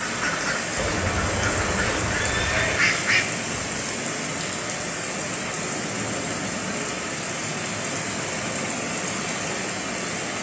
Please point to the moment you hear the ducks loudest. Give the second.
3 s.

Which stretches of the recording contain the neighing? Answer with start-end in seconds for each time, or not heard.
0.8-2.8, 5.7-6.8.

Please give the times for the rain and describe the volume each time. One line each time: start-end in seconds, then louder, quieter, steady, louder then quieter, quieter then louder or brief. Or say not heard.
0.0-10.3 steady.